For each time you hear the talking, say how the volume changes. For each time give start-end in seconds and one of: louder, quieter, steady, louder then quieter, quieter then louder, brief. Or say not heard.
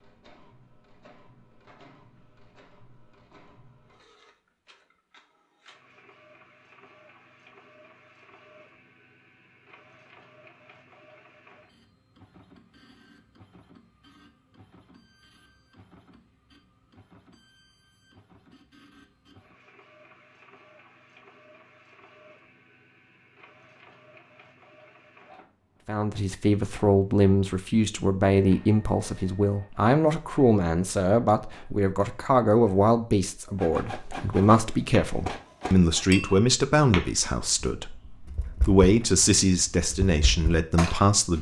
25.9-41.3 steady.